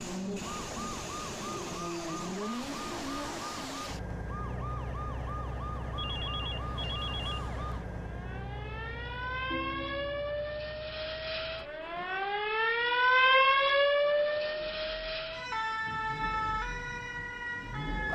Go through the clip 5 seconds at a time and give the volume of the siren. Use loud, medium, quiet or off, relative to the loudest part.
quiet, quiet, loud, medium.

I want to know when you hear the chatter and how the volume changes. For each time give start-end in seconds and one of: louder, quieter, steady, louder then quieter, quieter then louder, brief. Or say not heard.
not heard.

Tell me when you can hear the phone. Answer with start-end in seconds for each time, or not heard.
6.0-7.5, 9.5-10.2.